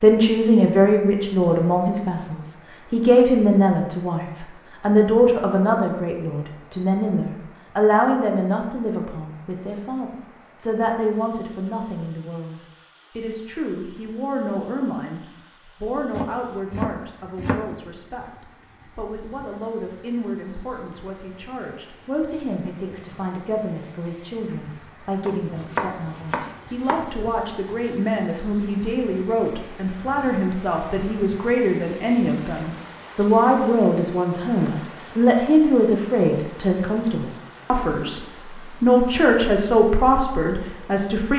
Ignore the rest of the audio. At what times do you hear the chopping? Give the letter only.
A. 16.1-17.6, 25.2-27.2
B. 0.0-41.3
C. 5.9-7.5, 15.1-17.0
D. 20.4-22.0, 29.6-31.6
A.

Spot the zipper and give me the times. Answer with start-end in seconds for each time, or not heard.
not heard.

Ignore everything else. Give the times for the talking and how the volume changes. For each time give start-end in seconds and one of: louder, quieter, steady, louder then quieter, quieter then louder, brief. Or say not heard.
0.0-41.3 quieter then louder.